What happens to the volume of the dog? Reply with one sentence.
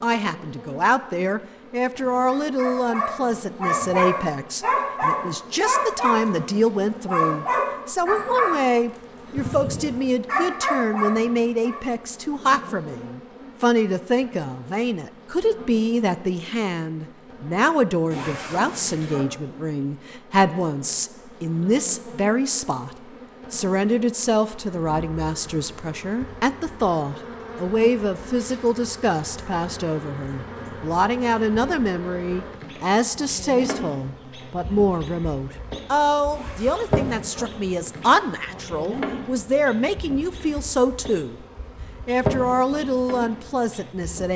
The loudness of the dog stays about the same.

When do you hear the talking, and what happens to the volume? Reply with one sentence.
The talking can be heard from 0.0 to 41.4 s, at a steady volume; and briefly from 42.0 to 44.3 s.